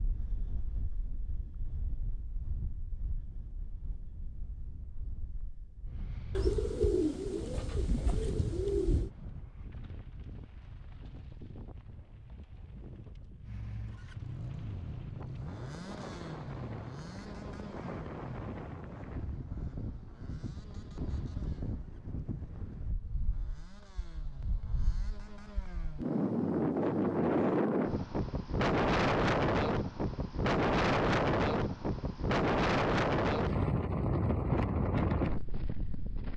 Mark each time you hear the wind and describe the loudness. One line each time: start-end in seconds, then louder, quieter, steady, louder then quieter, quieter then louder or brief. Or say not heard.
0.0-36.3 louder.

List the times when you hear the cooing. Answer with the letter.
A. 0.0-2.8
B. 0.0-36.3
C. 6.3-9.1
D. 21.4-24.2
C.